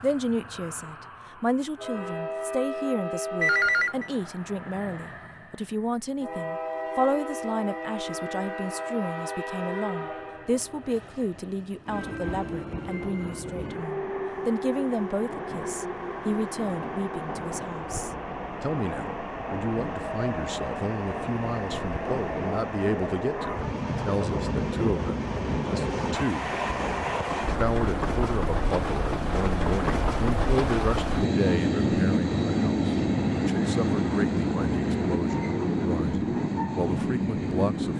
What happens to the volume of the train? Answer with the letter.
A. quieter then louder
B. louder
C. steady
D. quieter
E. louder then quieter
B.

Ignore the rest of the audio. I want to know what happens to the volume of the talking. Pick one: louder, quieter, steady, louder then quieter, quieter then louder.
steady.